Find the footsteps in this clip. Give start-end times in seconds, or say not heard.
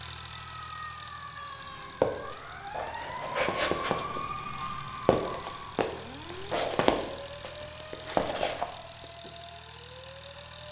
2.0-9.3.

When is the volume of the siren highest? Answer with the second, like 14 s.
4 s.